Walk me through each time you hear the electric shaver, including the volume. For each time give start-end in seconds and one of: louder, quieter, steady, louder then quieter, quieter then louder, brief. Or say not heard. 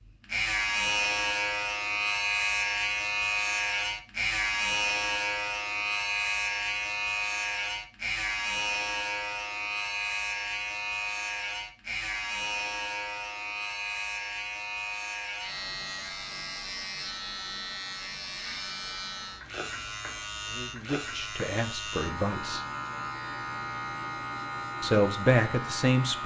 0.0-26.2 quieter.